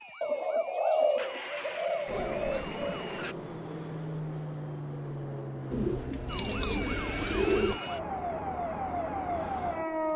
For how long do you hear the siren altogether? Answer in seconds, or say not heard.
7 s.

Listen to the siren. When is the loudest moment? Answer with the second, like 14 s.
10 s.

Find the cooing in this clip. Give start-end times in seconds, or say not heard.
0.2-3.0, 5.7-7.8.